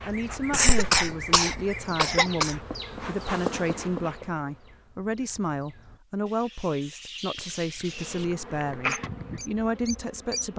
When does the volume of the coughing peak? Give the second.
1 s.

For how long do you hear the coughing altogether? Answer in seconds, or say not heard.
4 s.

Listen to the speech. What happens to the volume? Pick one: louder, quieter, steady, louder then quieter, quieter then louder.
steady.